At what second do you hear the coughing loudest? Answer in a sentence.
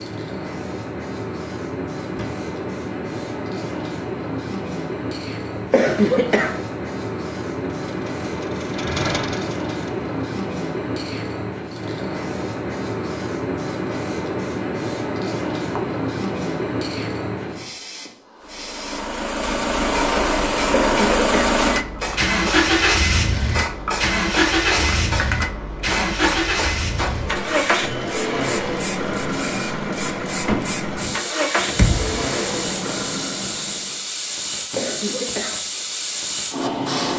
The volume of the coughing peaks at 6 seconds.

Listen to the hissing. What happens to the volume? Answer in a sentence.
The loudness of the hissing stays about the same.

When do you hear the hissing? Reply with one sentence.
You can hear the hissing from 0.0 to 37.1 s.